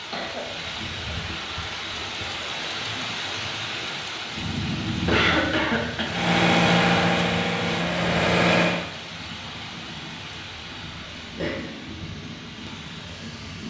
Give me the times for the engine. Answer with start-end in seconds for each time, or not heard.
6.0-8.8.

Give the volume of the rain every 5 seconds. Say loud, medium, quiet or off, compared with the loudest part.
loud, loud, medium.